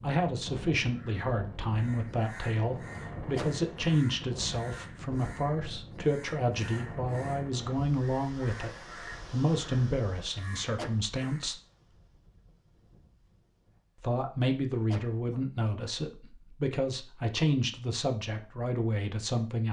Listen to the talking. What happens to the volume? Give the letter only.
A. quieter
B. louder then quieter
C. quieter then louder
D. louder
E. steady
E.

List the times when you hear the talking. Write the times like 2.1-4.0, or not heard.
0.0-11.6, 14.0-19.6.